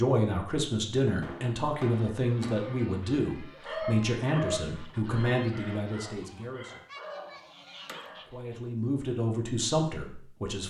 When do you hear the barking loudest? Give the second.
4 s.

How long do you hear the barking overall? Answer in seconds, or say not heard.
5 s.